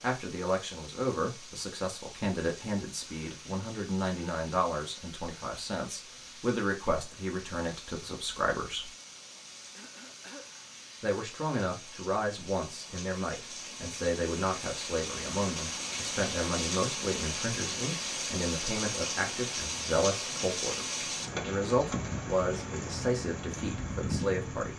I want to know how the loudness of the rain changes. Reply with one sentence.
The loudness of the rain goes up.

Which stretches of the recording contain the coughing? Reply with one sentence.
You can hear the coughing from 9.8 to 10.5 s.